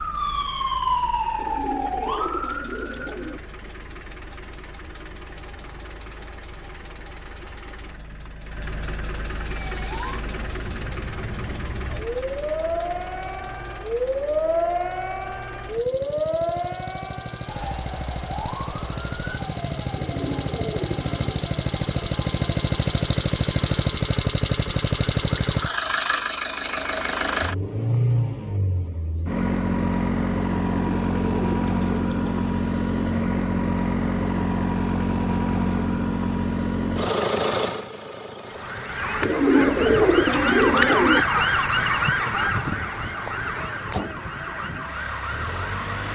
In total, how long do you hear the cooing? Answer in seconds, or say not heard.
7 s.